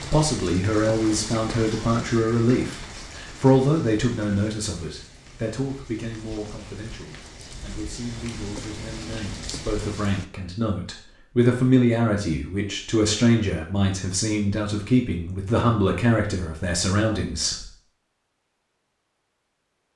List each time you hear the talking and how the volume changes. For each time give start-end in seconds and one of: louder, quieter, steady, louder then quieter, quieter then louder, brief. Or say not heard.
0.1-17.6 quieter then louder.